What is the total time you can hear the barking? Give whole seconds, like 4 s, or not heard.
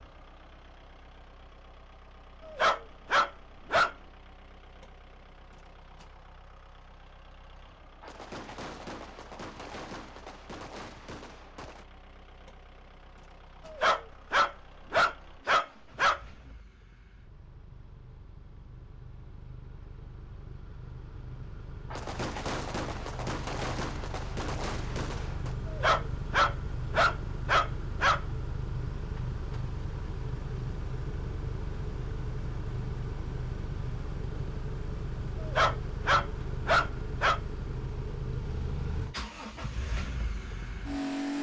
9 s.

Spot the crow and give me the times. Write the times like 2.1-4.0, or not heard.
not heard.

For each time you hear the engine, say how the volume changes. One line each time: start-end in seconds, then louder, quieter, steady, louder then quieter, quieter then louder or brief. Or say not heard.
0.0-41.3 louder.